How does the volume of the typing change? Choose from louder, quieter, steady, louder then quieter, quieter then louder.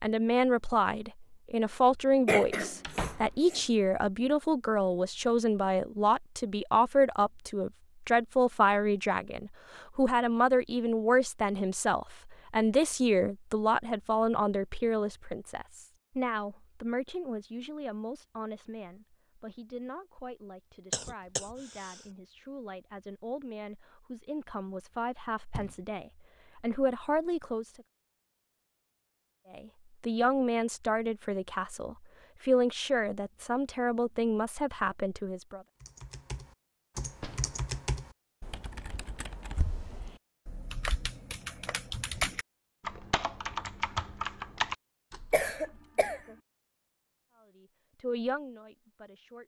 quieter then louder.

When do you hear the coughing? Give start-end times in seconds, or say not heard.
2.2-3.6, 20.9-22.0, 45.3-46.4.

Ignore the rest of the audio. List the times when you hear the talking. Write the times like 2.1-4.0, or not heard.
0.0-27.8, 29.5-35.6, 47.3-49.4.